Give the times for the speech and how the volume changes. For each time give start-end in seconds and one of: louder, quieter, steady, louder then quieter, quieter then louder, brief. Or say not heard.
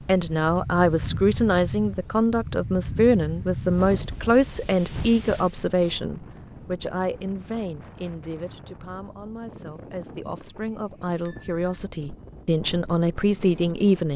0.1-14.1 quieter then louder.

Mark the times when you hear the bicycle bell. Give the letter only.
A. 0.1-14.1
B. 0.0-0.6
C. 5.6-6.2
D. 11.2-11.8
D.